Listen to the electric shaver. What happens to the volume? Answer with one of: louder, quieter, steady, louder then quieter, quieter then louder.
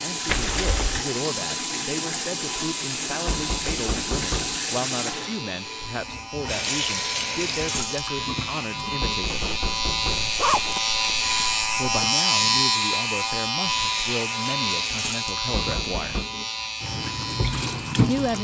louder then quieter.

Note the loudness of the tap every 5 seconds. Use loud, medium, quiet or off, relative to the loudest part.
loud, loud, medium, loud.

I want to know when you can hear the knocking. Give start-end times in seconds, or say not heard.
3.2-4.6, 9.0-10.3, 15.5-16.2.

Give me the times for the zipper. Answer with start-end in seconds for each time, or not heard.
0.2-1.1, 9.3-11.9.